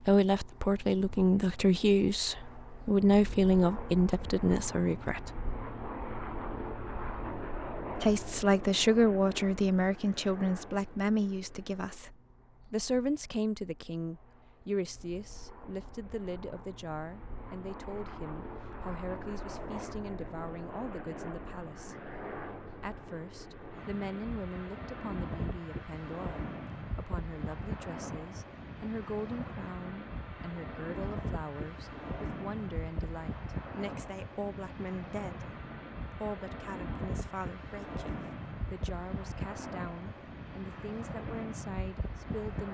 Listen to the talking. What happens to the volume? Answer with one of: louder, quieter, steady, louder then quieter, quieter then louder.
quieter.